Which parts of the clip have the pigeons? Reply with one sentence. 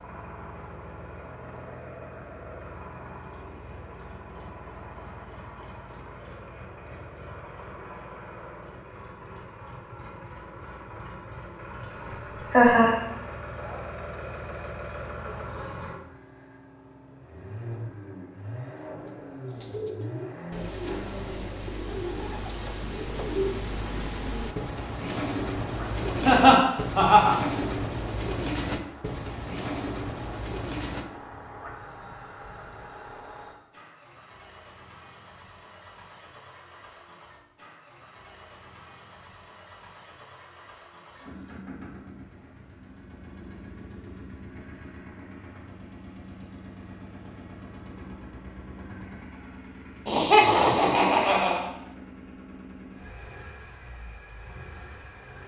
The pigeons can be heard from 18.9 to 31.1 s.